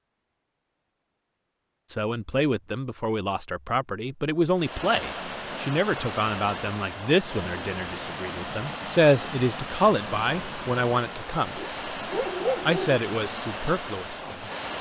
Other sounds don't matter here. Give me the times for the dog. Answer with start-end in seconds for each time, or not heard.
11.6-13.0.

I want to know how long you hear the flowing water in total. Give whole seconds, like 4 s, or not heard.
10 s.